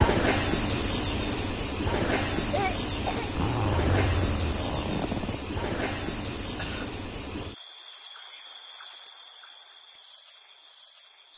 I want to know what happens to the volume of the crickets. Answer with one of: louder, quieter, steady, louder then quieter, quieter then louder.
quieter.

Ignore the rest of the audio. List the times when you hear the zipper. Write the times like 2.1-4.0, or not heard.
3.3-5.4.